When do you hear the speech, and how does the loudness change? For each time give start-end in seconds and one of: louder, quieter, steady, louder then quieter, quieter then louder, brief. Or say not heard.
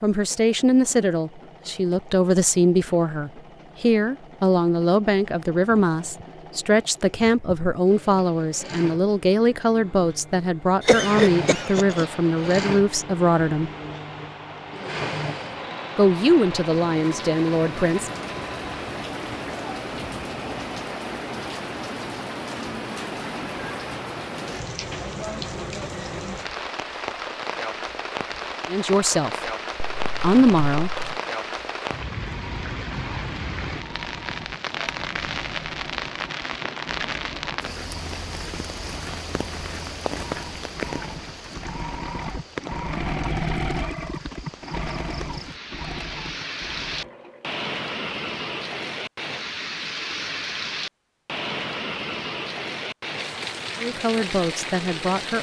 0.0-13.7 steady
15.9-18.2 brief
28.6-29.5 brief
30.2-30.9 brief
53.8-55.3 brief.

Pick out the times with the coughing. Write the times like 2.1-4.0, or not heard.
10.8-12.6.